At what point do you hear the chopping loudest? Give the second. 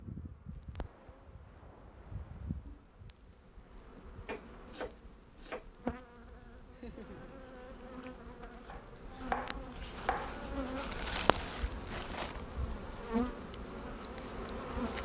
9 s.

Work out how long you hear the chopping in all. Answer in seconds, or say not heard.
3 s.